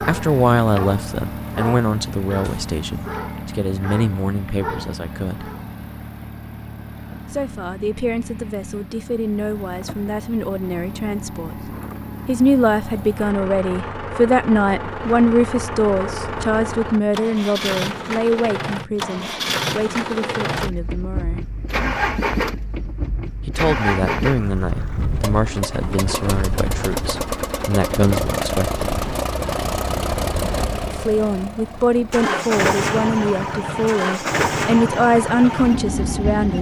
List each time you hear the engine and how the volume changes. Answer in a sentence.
The engine can be heard from 0.0 to 36.5 s, getting louder.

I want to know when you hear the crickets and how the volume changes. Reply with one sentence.
The crickets can't be heard in this clip.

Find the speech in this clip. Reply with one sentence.
You can hear the speech from 0.0 to 5.5 s, from 7.3 to 21.4 s, from 23.4 to 28.9 s and from 30.9 to 36.5 s.